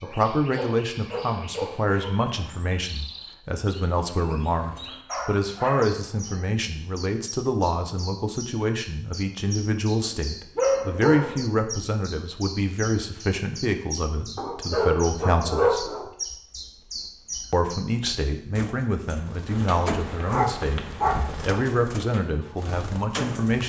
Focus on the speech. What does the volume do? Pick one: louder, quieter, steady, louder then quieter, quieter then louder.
steady.